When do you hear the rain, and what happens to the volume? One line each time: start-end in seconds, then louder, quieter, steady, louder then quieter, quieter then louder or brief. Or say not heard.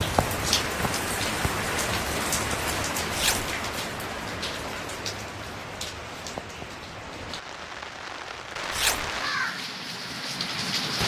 0.0-11.0 quieter then louder.